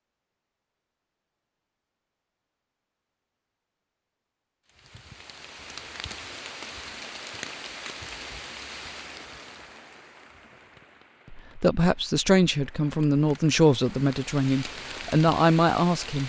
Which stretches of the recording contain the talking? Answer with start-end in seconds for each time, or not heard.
11.3-16.2.